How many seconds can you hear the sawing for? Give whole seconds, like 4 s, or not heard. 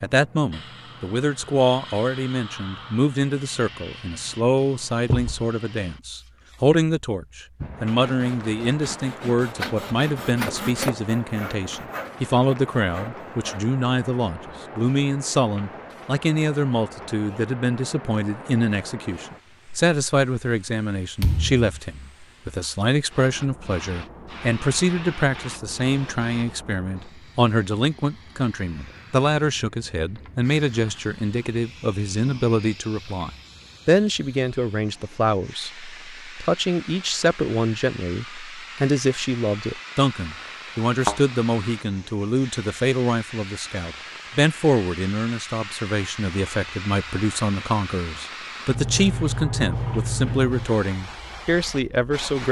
6 s.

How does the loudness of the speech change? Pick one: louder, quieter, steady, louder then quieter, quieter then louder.
steady.